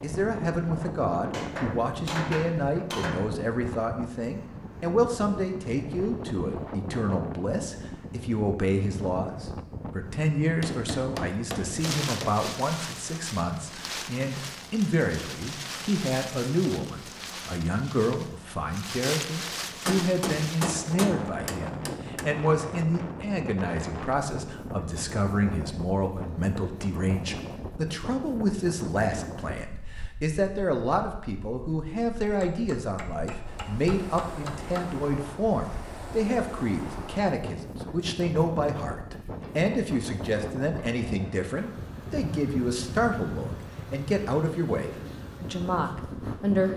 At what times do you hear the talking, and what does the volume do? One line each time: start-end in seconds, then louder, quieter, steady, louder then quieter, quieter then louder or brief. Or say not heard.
0.0-46.7 steady.